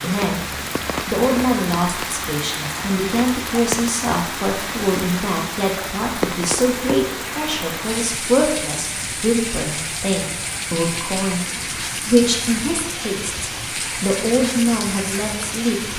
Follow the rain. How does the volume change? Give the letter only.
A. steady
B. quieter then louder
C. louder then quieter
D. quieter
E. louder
A.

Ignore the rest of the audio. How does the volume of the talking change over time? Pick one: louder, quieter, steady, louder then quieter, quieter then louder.
steady.